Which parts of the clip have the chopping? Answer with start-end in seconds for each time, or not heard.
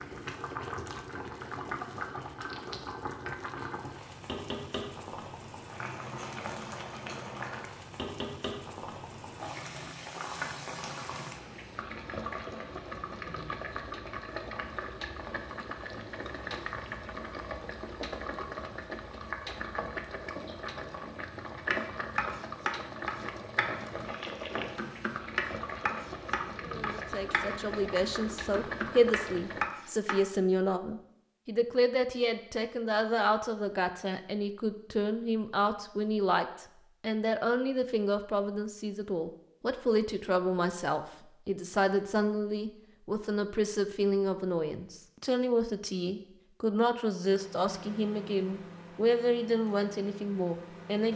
21.7-30.2.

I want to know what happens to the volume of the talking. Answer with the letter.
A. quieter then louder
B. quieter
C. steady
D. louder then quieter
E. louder
C.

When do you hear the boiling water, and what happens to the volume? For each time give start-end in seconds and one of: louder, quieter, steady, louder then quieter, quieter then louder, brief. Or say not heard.
0.0-29.7 steady.